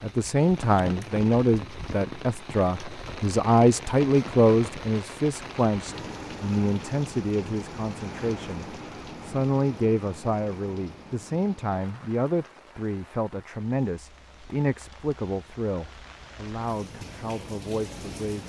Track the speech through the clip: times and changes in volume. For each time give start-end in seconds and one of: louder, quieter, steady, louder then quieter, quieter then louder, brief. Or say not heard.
0.0-18.4 quieter.